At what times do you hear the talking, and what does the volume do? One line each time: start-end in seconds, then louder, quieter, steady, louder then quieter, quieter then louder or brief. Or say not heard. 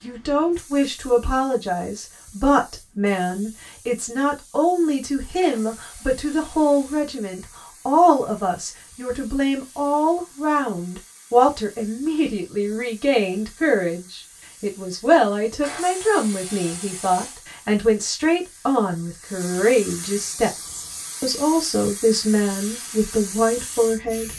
0.0-24.3 steady.